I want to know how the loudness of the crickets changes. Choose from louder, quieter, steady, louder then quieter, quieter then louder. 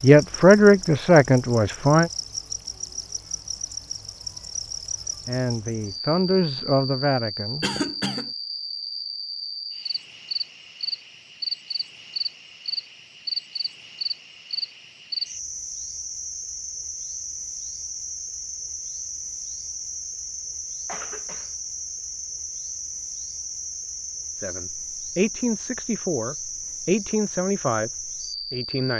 steady.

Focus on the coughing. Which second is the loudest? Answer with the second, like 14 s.
8 s.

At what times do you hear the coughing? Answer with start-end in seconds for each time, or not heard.
7.6-8.3, 20.9-21.5.